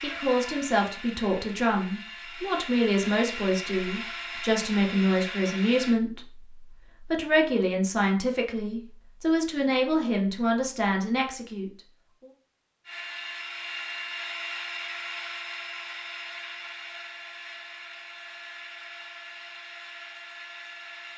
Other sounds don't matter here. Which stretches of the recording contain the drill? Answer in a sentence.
The drill can be heard from 0.0 to 6.0 s and from 12.8 to 21.1 s.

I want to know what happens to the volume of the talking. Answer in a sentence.
The volume of the talking stays about the same.